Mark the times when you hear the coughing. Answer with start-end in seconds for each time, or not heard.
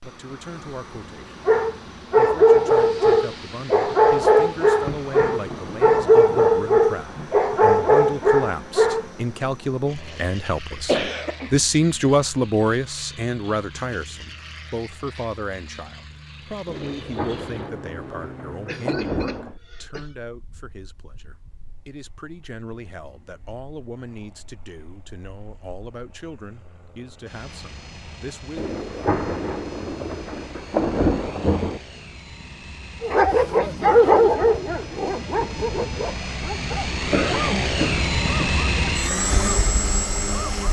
10.0-11.7, 18.6-20.1, 37.1-38.8.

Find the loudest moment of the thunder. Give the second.
31 s.